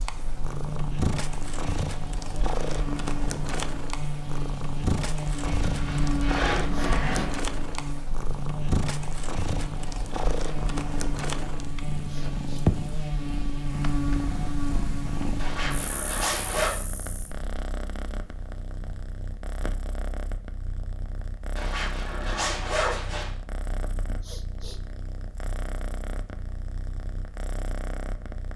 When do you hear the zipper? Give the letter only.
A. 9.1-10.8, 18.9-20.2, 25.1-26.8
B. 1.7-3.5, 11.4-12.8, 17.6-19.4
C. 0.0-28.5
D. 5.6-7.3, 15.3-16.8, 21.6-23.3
D.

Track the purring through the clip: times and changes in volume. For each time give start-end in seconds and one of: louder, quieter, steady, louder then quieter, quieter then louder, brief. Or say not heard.
0.0-28.5 quieter.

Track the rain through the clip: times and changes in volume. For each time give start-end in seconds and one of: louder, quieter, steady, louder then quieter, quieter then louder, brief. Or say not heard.
not heard.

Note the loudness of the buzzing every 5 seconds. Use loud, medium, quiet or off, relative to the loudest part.
loud, loud, loud, medium, off, off.